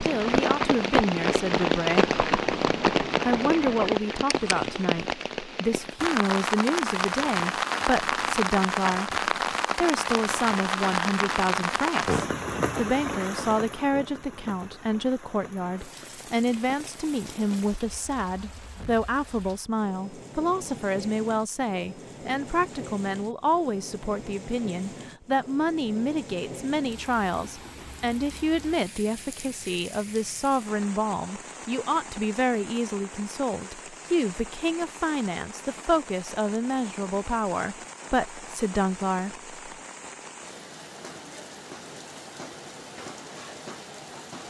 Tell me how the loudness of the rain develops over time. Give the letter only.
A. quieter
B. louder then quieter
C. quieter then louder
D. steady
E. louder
A.